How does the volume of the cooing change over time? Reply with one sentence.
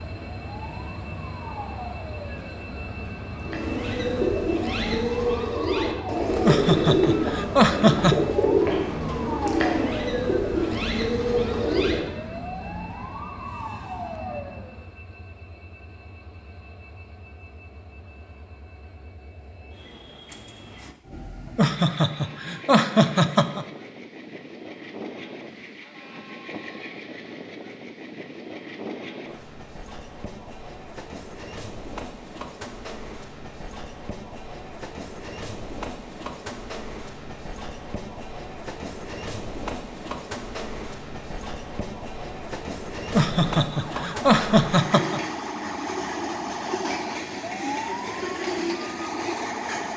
The loudness of the cooing stays about the same.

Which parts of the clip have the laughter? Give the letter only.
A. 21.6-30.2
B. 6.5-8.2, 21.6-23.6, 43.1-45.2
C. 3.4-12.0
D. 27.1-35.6
B.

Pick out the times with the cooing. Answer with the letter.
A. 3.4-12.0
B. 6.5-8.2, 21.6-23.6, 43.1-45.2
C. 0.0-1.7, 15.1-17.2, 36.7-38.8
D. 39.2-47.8
A.